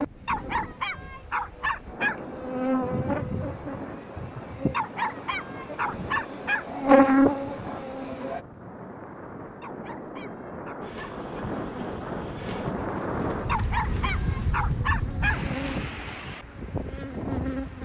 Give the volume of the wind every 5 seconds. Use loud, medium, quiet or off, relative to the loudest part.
medium, medium, loud, loud.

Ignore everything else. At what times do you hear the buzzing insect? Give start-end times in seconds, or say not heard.
0.0-8.4, 10.8-17.7.